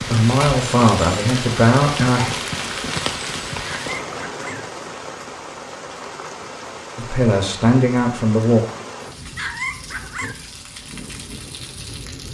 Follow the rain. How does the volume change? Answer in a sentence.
The volume of the rain goes down.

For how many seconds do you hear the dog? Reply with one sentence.
You can hear the dog for 2 seconds altogether.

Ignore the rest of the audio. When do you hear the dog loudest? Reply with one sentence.
The loudest moment of the dog is at 10 seconds.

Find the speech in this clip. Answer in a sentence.
You can hear the speech from 0.0 to 2.4 s and from 7.0 to 8.6 s.